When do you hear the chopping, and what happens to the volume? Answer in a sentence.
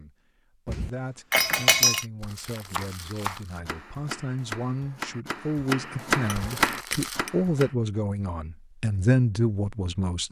The chopping can be heard from 2.6 to 7.8 s, getting louder.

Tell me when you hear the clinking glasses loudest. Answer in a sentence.
The volume of the clinking glasses peaks at 2 seconds.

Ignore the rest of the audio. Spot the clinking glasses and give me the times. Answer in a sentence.
You can hear the clinking glasses from 0.7 to 2.0 s and from 6.1 to 7.3 s.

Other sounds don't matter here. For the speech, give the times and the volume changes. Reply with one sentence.
The speech can be heard from 0.0 to 10.2 s, getting louder.